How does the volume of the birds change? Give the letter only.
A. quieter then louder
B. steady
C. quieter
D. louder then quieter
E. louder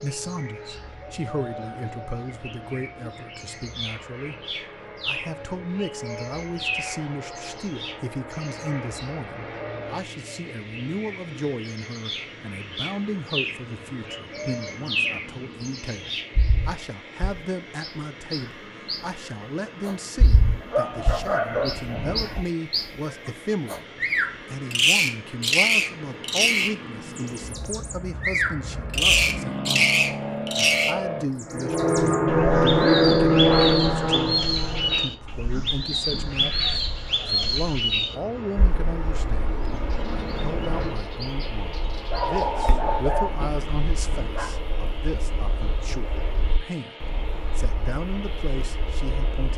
D.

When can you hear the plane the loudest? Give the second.
33 s.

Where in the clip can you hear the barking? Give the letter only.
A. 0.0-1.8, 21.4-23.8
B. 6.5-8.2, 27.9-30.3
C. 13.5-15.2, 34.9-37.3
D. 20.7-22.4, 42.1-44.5
D.